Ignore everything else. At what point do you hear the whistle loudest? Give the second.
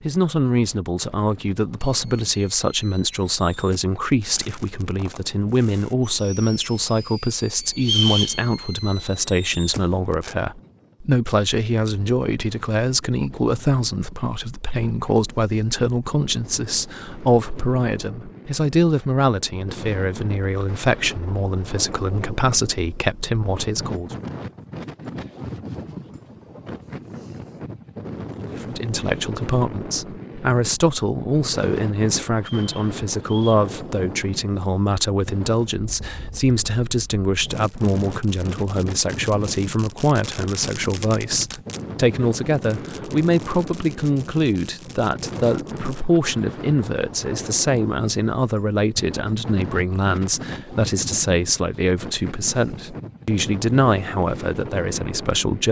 8 s.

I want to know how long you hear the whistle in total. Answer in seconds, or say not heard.
2 s.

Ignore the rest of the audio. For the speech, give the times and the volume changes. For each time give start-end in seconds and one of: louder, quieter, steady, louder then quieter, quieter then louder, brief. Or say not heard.
0.0-24.1 steady
28.5-55.6 steady.